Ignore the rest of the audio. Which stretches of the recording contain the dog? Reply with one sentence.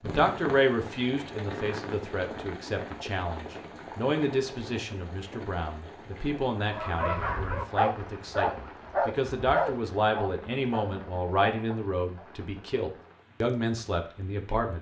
The dog can be heard from 6.5 to 12.3 s.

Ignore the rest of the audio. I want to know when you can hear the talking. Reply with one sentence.
The talking can be heard from 0.0 to 14.7 s.